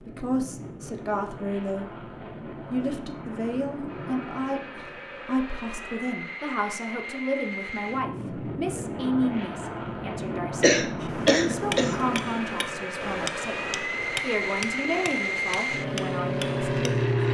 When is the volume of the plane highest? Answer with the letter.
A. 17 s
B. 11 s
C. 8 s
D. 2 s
A.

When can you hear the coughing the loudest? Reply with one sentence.
The loudest moment of the coughing is at 11 seconds.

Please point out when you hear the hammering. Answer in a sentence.
The hammering can be heard from 11.0 to 17.1 s.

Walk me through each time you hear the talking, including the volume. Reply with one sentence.
You can hear the talking briefly from 0.0 to 2.1 s; and from 2.7 to 16.9 s, at a steady volume.